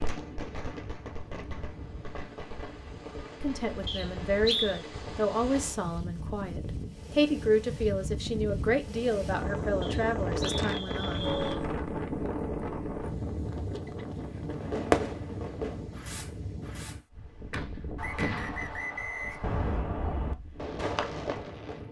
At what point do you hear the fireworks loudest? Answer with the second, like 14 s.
15 s.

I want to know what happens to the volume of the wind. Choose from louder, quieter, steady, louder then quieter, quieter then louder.
louder then quieter.